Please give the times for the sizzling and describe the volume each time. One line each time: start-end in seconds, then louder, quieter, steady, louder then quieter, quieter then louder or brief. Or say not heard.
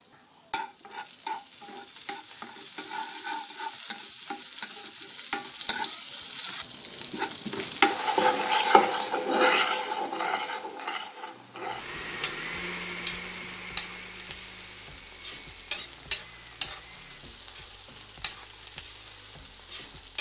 0.0-20.1 louder then quieter.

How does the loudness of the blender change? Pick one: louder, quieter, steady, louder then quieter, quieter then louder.
quieter.